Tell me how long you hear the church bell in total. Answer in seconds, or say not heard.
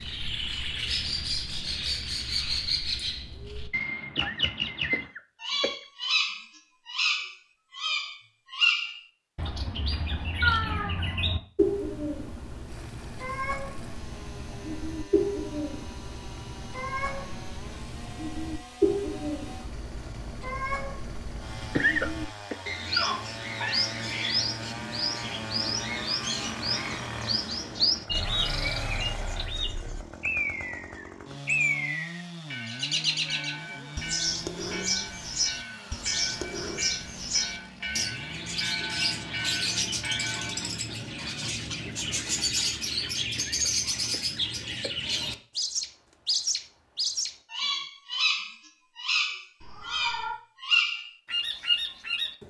8 s.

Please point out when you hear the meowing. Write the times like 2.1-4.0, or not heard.
10.4-11.0, 22.9-23.9, 49.6-50.4.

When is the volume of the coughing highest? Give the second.
22 s.